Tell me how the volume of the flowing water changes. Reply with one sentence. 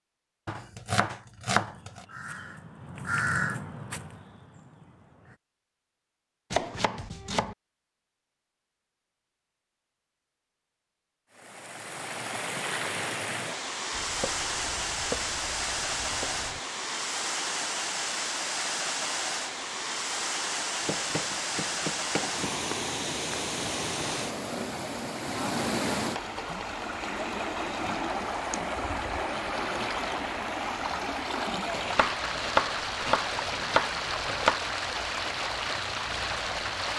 The volume of the flowing water stays about the same.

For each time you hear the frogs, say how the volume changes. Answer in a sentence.
The frogs can't be heard in this clip.